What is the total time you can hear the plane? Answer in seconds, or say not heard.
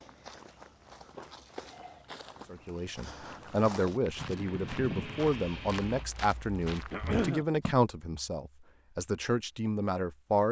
2 s.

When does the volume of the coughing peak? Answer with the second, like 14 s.
7 s.